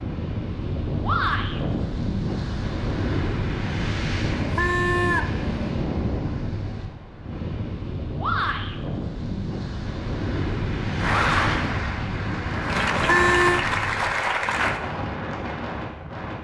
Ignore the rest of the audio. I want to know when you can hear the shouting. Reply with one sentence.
You can hear the shouting from 1.0 to 1.6 s, from 8.2 to 8.8 s and from 11.1 to 11.5 s.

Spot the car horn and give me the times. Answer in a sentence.
The car horn can be heard from 4.2 to 5.8 s and from 12.8 to 13.7 s.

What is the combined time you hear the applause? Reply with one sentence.
You can hear the applause for 4 seconds altogether.